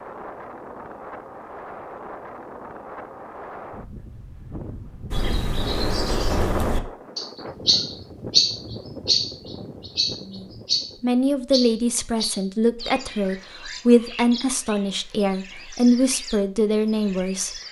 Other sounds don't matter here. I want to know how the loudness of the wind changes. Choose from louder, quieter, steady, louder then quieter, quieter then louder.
louder then quieter.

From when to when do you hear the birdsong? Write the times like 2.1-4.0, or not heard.
5.1-17.6.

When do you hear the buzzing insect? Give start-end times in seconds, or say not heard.
not heard.